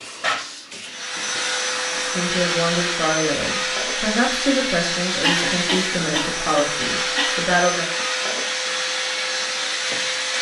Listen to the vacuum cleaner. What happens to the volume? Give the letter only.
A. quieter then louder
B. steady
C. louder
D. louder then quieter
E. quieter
B.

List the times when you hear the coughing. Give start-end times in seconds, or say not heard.
5.2-7.5.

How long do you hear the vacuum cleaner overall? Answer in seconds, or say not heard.
10 s.